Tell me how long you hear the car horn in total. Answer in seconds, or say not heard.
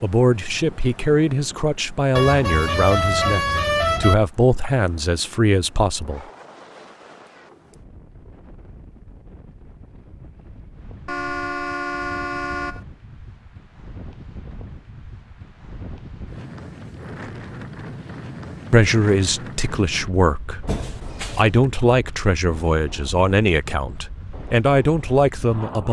5 s.